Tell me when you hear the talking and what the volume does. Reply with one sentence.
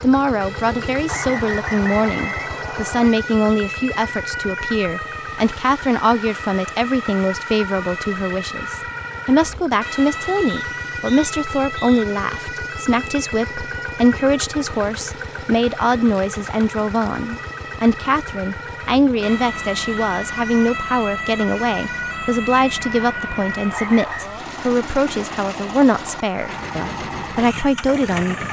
You can hear the talking from 0.0 to 28.4 s, at a steady volume.